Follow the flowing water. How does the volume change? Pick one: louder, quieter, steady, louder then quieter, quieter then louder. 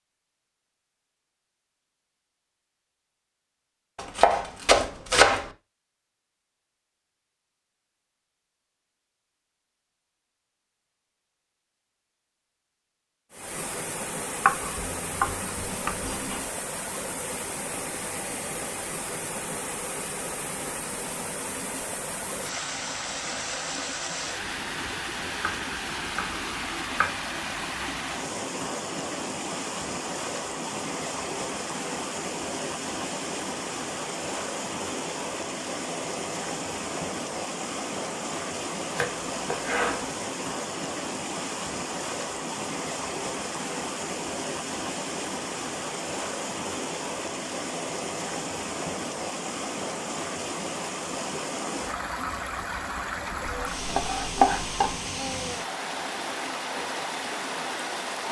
steady.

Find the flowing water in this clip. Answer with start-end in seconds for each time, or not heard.
13.3-58.2.